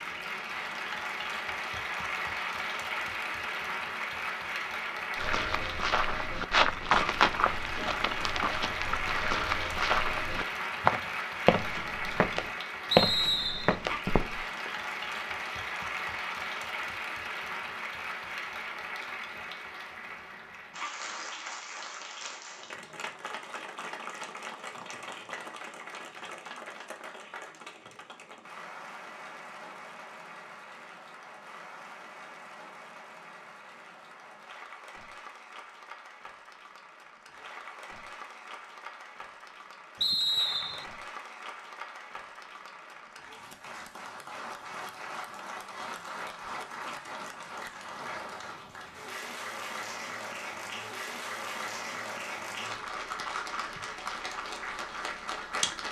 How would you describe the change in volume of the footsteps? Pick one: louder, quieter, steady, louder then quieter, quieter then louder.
quieter then louder.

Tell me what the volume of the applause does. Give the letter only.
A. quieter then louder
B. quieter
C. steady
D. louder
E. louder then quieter
A.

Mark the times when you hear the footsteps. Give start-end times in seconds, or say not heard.
5.2-14.7.